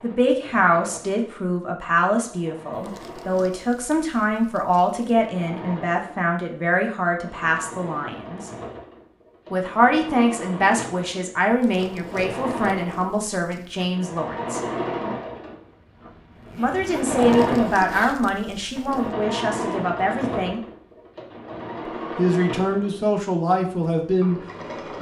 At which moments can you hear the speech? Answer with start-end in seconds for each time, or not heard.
0.0-8.5, 9.5-14.6, 16.6-20.6, 21.9-24.4.